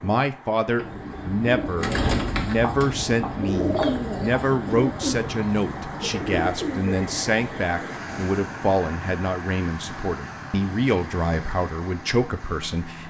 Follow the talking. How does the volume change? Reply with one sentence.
The volume of the talking stays about the same.